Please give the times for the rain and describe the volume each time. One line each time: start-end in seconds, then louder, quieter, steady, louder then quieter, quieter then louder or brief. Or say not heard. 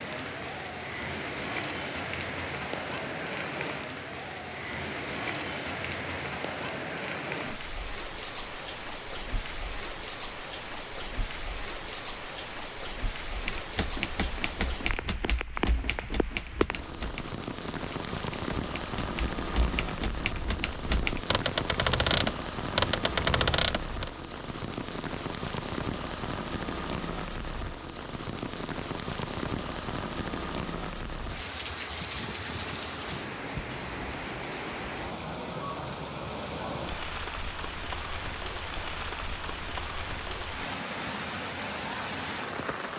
0.0-42.9 steady.